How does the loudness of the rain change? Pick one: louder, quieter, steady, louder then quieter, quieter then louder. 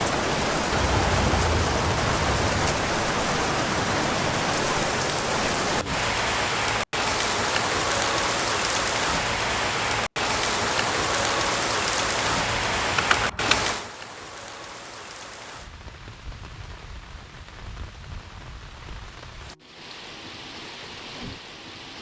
quieter.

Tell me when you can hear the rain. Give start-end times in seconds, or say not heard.
0.0-21.9.